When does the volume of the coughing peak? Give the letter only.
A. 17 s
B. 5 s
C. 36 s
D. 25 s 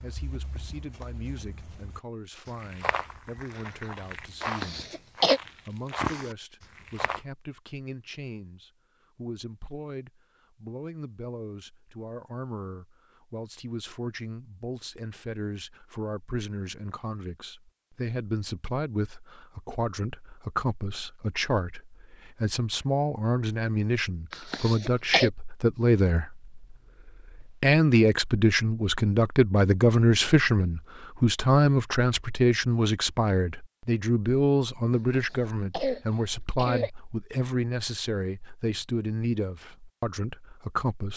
B.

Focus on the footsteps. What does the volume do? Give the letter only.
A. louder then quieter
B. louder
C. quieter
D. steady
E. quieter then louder
B.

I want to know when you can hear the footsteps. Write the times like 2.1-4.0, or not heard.
0.0-7.2.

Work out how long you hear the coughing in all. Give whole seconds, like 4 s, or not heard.
4 s.